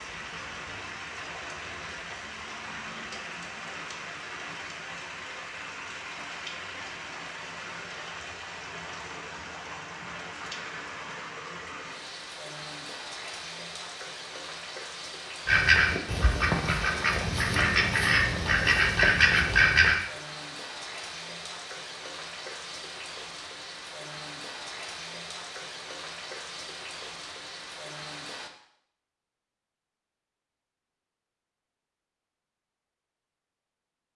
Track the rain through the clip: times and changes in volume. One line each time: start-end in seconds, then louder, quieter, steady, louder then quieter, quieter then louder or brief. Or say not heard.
0.0-28.5 steady.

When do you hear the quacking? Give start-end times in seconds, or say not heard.
15.4-20.0.